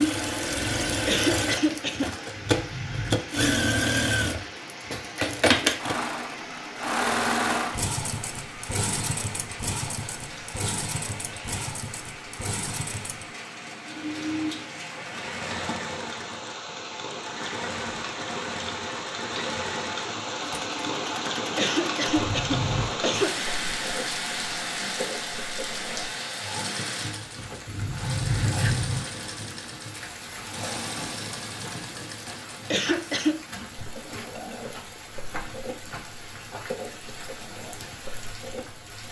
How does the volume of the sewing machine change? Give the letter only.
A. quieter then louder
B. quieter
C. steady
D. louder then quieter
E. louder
B.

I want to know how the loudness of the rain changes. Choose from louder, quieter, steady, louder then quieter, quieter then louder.
louder then quieter.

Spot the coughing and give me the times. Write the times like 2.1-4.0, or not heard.
1.1-2.1, 21.6-23.4, 32.7-33.4.